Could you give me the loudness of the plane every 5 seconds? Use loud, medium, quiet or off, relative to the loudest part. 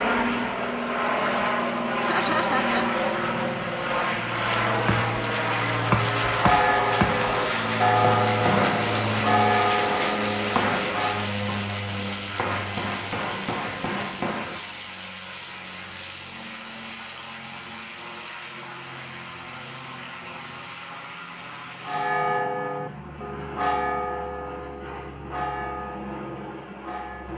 loud, loud, medium, quiet, quiet, quiet.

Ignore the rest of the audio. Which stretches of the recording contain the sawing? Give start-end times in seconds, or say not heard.
not heard.